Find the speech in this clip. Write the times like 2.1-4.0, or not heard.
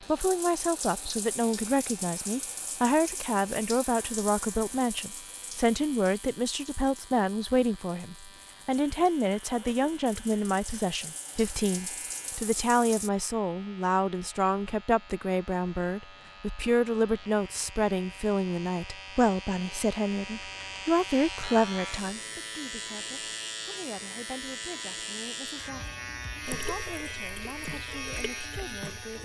0.1-29.2.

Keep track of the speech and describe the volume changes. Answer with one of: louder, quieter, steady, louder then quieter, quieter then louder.
quieter.